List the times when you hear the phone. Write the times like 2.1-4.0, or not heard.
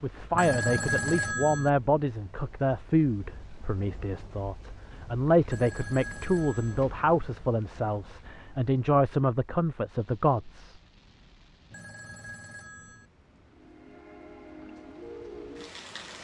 0.3-1.7, 5.5-6.8, 11.7-13.1.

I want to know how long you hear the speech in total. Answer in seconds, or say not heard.
11 s.